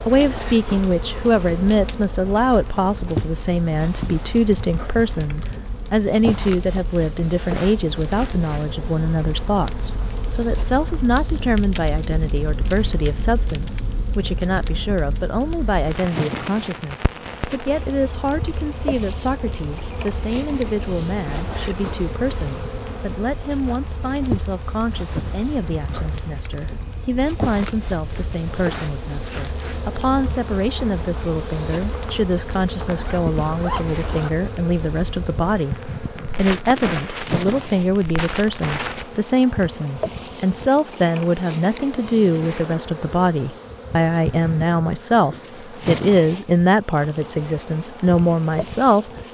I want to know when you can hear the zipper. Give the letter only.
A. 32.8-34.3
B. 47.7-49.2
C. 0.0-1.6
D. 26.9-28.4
A.